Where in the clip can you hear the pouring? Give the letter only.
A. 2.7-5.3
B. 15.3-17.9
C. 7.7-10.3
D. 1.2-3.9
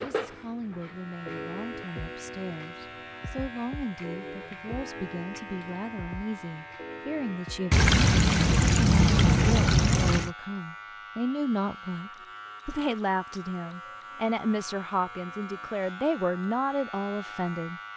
C.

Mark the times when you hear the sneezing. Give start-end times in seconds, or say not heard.
not heard.